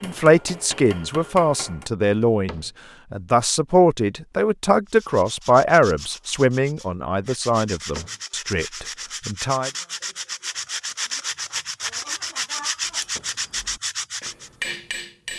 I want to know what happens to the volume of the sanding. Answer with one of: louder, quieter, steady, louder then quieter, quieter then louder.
louder.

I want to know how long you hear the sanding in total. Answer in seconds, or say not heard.
10 s.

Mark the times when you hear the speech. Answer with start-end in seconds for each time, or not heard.
0.0-9.7.